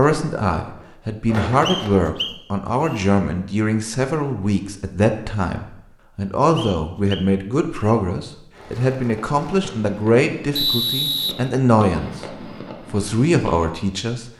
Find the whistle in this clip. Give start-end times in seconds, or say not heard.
1.6-3.0, 6.5-8.0, 10.6-11.3.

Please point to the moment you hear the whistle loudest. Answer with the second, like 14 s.
11 s.